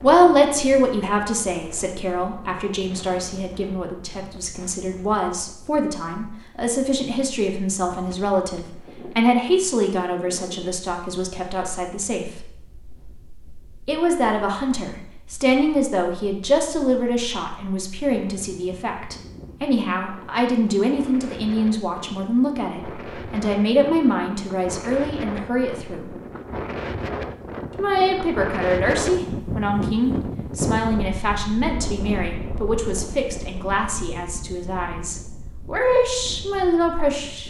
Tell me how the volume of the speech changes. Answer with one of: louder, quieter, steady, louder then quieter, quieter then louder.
steady.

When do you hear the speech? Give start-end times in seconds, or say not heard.
0.0-12.5, 13.8-26.1, 27.8-37.4.